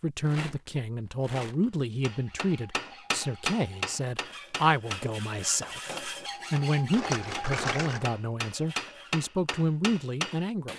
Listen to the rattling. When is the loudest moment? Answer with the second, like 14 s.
8 s.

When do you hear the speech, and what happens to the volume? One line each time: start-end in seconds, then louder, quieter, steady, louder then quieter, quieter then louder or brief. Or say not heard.
0.0-10.7 steady.